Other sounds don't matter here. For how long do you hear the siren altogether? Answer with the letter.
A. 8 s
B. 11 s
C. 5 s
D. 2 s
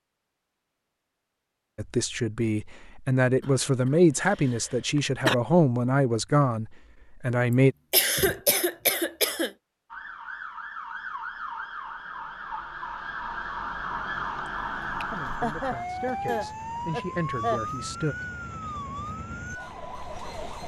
B.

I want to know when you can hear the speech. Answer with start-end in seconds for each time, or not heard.
1.8-7.8, 15.1-18.1.